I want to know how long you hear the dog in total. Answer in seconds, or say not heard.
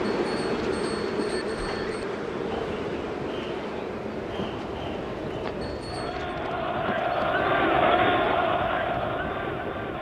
not heard.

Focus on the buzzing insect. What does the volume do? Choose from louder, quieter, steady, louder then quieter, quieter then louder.
quieter.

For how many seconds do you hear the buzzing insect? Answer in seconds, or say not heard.
10 s.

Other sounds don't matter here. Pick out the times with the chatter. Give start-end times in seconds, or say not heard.
2.5-9.9.